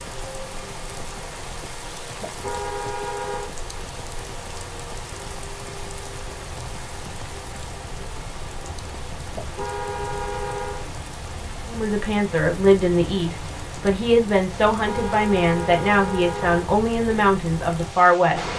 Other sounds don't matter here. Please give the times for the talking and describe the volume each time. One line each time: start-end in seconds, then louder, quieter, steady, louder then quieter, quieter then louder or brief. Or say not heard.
11.7-18.5 steady.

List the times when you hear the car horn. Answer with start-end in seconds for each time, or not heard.
2.2-3.5, 9.3-10.9, 14.7-16.6.